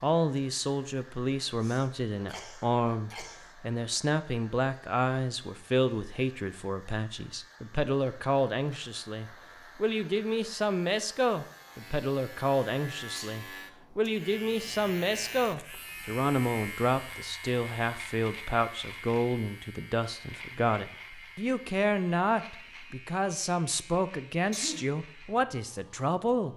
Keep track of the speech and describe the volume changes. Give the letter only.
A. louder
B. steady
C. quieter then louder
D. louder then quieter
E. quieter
B.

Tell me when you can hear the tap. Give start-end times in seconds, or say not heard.
not heard.